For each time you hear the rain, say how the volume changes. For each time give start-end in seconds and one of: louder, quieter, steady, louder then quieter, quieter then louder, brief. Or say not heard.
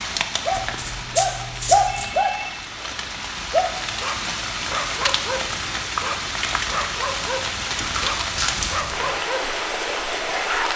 0.0-10.7 louder.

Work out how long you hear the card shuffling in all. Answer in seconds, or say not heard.
3 s.